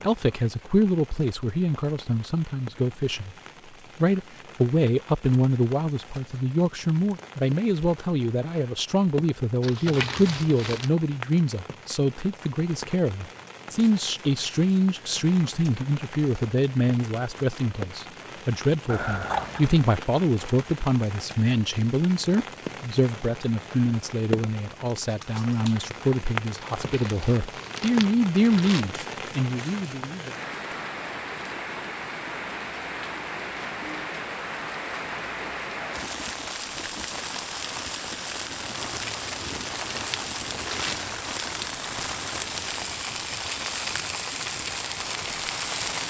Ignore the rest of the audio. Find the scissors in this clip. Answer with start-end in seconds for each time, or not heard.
18.9-19.8, 25.1-25.8.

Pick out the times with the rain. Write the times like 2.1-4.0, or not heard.
0.0-46.0.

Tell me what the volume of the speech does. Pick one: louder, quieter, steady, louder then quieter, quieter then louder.
steady.